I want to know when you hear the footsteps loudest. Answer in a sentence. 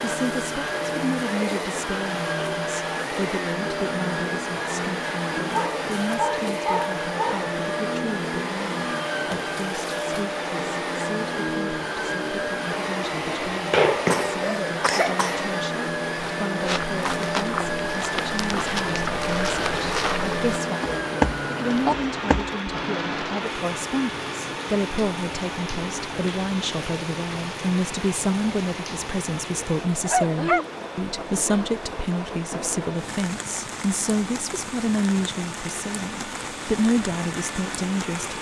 The loudest moment of the footsteps is at 21 seconds.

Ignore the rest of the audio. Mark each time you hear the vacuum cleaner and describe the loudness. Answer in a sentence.
The vacuum cleaner can be heard from 0.0 to 38.3 s, getting quieter.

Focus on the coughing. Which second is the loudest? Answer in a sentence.
The volume of the coughing peaks at 14 seconds.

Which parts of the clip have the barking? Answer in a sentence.
You can hear the barking from 5.5 to 7.4 s and from 29.6 to 30.6 s.